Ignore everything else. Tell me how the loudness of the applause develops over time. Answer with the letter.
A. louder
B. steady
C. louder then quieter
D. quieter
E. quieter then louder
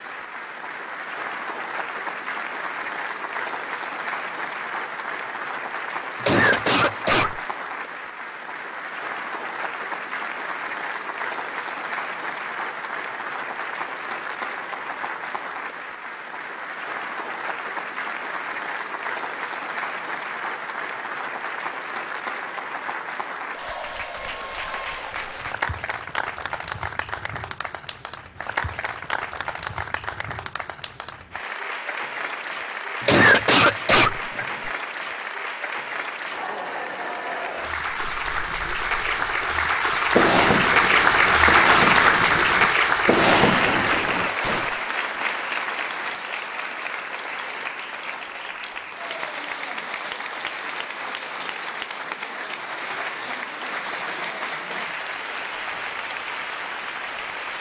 C.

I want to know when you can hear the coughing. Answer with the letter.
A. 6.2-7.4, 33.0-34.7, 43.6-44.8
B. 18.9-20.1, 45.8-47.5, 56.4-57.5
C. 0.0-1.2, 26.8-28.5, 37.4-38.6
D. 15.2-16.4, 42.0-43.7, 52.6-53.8
A.